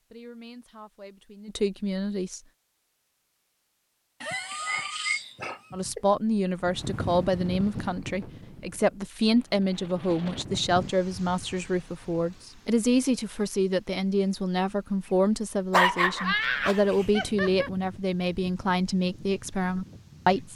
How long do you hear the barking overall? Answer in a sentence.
You can hear the barking for 4 seconds altogether.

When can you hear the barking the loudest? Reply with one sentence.
The volume of the barking peaks at 16 seconds.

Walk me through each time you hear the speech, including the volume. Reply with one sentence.
The speech can be heard briefly from 0.1 to 2.4 s; and from 5.7 to 20.5 s, at a steady volume.